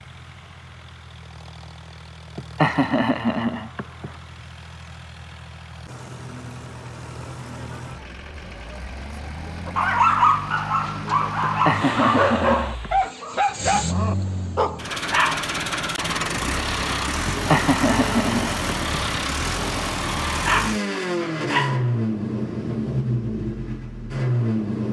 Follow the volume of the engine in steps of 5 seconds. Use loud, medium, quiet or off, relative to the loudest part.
quiet, quiet, medium, loud, loud.